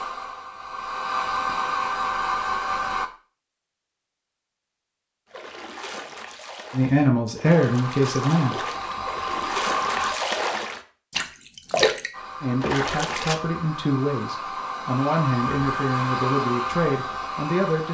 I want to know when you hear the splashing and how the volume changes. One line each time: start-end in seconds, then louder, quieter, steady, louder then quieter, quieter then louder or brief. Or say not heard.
5.3-13.3 louder.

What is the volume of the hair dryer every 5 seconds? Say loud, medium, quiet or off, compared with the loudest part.
loud, loud, medium, loud.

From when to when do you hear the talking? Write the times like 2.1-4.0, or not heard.
6.7-8.6, 12.4-17.8.